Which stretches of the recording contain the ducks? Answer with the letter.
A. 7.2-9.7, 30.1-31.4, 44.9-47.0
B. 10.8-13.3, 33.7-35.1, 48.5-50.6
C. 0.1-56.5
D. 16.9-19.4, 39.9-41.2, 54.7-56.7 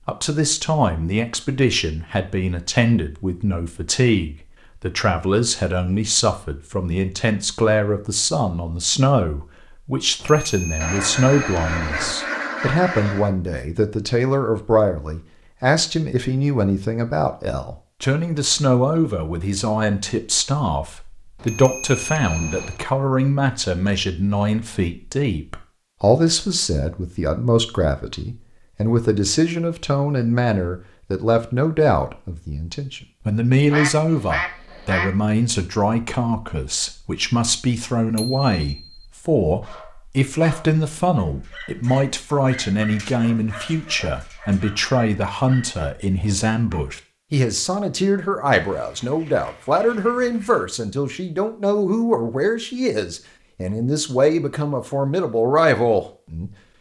B.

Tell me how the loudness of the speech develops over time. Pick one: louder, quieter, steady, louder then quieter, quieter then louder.
steady.